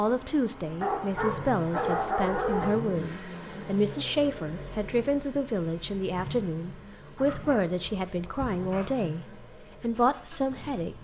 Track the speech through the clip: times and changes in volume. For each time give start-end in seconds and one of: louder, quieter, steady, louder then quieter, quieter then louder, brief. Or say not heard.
0.0-10.9 steady.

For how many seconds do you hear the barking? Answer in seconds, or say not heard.
4 s.